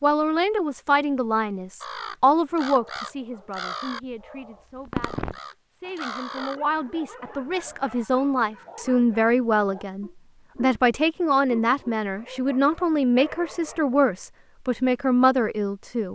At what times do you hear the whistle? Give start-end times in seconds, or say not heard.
not heard.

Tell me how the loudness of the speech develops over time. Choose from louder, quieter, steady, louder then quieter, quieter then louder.
quieter then louder.